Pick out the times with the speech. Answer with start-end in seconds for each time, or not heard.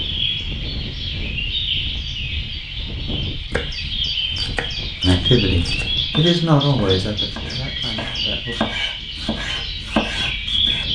5.0-8.6.